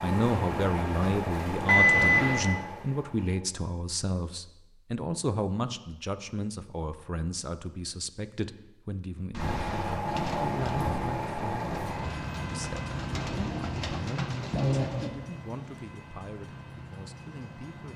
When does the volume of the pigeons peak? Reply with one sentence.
The volume of the pigeons peaks at 15 seconds.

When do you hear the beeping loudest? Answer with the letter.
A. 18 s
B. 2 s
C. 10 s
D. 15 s
B.